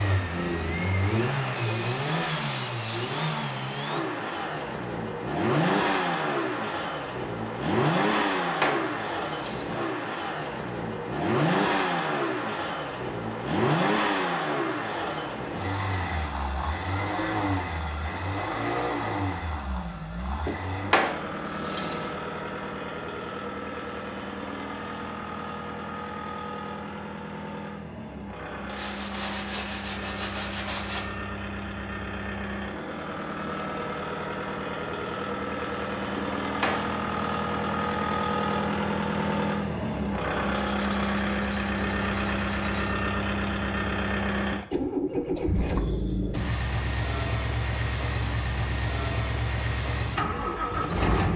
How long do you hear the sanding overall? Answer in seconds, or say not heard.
7 s.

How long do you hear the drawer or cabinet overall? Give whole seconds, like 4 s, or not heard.
4 s.